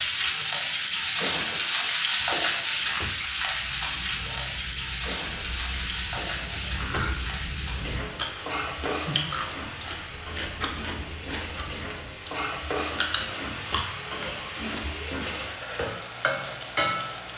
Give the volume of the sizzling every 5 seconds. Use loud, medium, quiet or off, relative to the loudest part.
loud, medium, medium, loud.